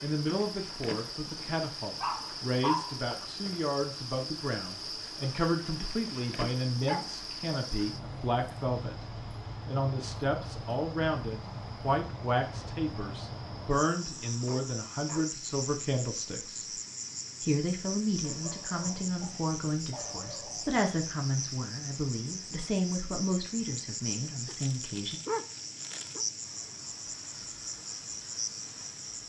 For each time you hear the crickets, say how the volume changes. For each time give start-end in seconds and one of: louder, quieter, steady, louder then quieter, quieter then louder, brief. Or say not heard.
0.0-29.2 steady.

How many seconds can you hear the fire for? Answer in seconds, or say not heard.
not heard.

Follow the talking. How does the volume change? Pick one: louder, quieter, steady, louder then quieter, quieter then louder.
steady.